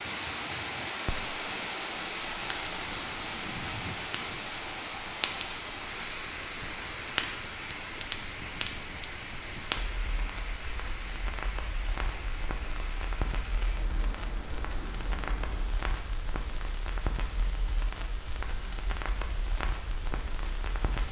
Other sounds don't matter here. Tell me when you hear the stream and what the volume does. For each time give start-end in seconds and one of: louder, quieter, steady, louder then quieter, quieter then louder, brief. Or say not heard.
0.0-21.0 quieter.